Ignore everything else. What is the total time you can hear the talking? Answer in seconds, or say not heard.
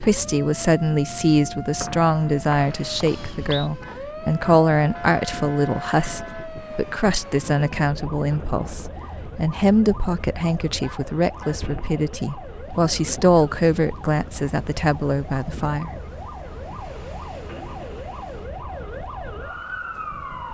16 s.